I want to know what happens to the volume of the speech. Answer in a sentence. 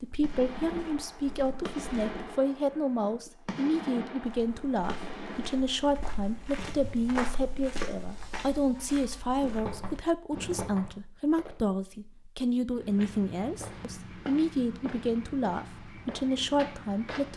The volume of the speech stays about the same.